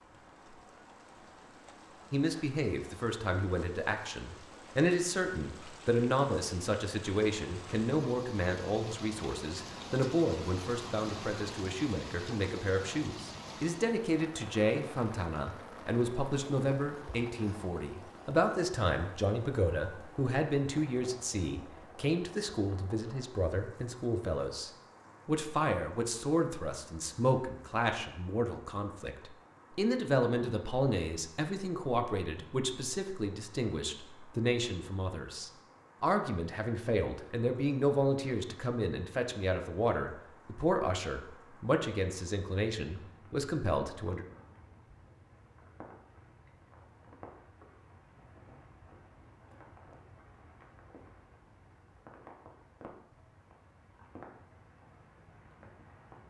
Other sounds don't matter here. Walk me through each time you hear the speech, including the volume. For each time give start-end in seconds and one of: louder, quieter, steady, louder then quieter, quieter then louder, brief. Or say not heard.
2.1-44.2 steady.